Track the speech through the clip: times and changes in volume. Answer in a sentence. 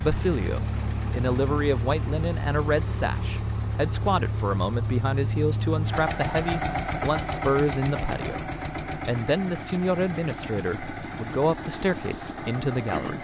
You can hear the speech from 0.0 to 13.2 s, at a steady volume.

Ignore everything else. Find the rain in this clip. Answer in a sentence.
The rain can't be heard in this clip.